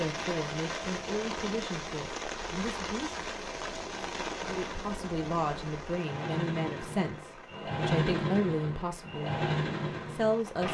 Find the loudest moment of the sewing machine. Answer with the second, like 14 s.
8 s.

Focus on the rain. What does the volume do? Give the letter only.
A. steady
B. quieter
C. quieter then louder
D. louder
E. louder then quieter
B.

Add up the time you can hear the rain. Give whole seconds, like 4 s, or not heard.
11 s.